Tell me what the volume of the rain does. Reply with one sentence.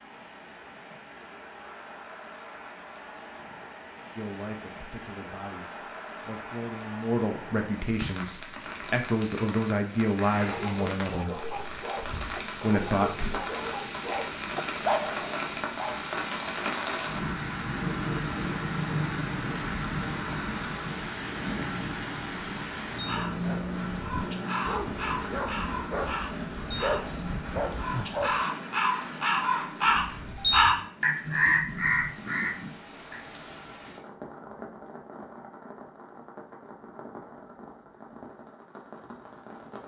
The loudness of the rain goes up, then down.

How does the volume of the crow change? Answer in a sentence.
The loudness of the crow goes up.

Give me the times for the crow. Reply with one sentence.
You can hear the crow from 22.9 to 33.2 s.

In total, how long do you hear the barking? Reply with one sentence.
You can hear the barking for 11 seconds altogether.